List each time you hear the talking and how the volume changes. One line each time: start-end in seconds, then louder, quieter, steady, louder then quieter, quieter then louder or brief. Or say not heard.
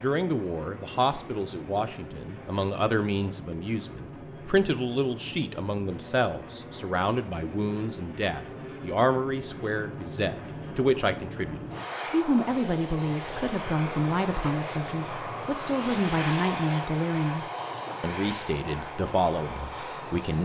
0.0-20.3 steady.